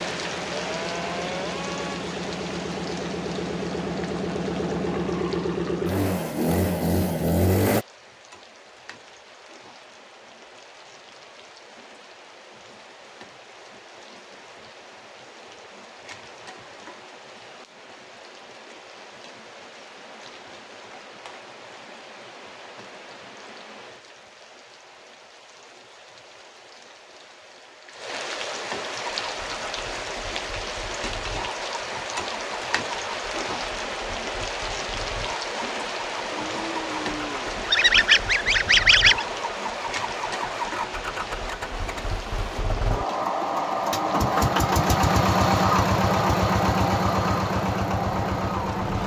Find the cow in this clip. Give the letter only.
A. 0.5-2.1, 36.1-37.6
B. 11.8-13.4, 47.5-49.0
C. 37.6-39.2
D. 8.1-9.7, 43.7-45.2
A.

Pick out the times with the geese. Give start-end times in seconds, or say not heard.
37.6-39.2.